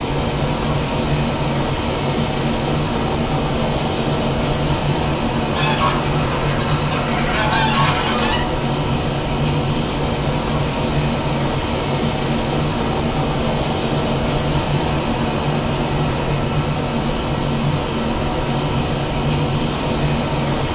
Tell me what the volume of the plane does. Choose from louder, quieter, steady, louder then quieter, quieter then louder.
steady.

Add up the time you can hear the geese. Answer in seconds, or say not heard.
3 s.